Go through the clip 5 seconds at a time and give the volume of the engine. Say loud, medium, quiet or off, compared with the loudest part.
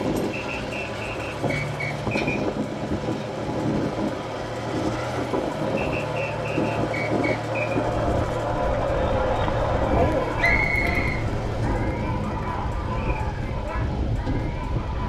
loud, loud, medium.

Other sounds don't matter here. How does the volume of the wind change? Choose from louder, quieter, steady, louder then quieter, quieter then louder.
steady.